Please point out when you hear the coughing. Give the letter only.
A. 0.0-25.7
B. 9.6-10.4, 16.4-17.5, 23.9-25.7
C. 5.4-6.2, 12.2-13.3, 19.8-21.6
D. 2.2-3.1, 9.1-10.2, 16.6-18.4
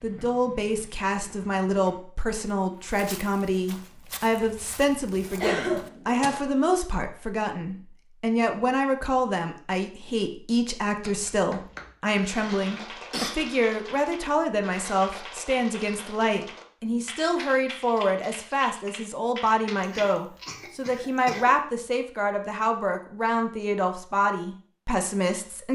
C.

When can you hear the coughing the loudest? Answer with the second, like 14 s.
6 s.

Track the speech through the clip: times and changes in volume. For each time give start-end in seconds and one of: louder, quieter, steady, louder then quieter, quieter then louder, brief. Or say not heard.
0.0-25.7 steady.